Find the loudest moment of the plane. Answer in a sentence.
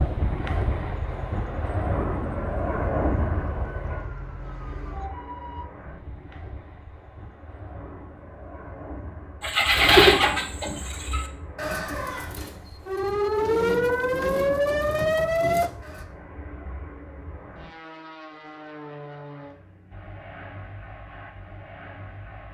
The loudest moment of the plane is at 3 seconds.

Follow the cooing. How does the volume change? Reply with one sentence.
The volume of the cooing goes down, then up.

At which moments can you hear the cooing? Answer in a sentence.
You can hear the cooing from 9.4 to 16.1 s.